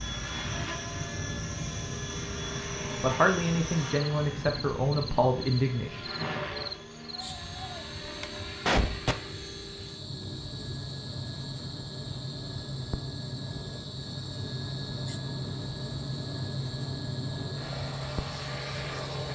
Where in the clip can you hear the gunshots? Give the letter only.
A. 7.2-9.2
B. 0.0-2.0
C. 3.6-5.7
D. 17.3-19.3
A.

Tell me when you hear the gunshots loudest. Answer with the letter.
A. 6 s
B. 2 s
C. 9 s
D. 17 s
C.